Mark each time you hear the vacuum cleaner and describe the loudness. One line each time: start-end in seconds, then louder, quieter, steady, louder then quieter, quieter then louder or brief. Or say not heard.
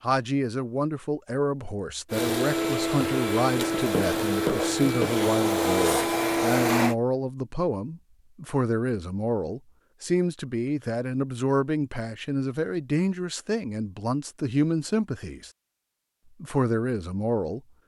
2.1-7.0 steady.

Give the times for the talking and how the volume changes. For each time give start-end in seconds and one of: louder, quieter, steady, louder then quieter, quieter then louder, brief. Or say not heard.
0.0-15.5 steady
16.4-17.6 brief.